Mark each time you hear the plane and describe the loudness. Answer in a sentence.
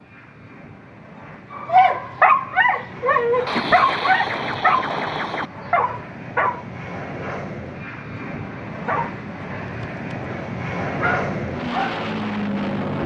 The plane can be heard from 0.0 to 13.0 s, getting louder.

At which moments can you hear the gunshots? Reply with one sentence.
You can hear the gunshots from 3.5 to 5.5 s.